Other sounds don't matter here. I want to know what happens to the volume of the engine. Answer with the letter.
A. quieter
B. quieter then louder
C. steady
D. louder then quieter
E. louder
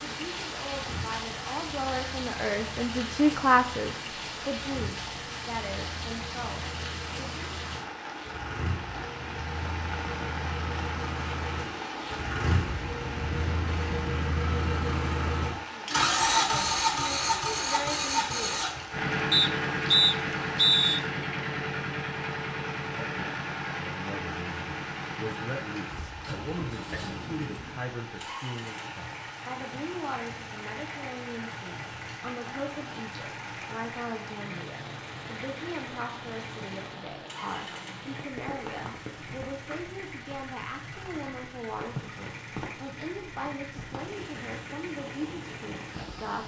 D.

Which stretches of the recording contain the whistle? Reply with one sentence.
The whistle can be heard from 19.3 to 21.0 s.